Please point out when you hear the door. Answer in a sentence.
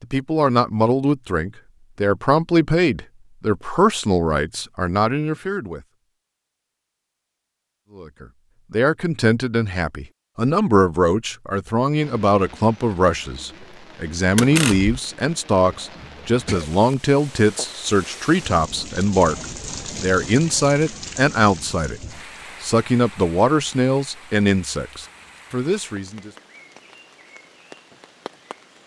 The door can be heard from 14.3 to 14.9 s.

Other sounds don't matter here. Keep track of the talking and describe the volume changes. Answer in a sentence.
The loudness of the talking stays about the same.